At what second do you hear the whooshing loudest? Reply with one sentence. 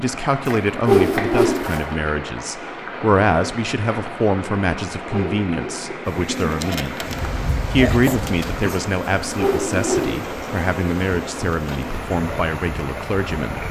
The volume of the whooshing peaks at 1 second.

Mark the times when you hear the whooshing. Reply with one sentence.
The whooshing can be heard from 0.8 to 1.6 s, from 5.1 to 5.8 s and from 9.4 to 10.1 s.